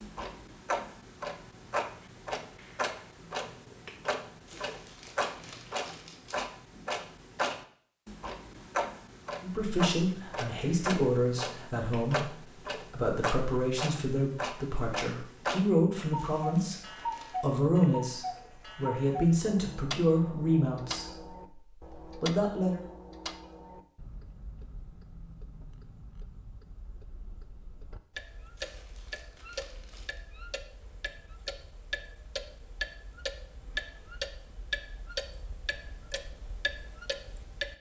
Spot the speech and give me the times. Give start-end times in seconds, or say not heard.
9.4-22.8.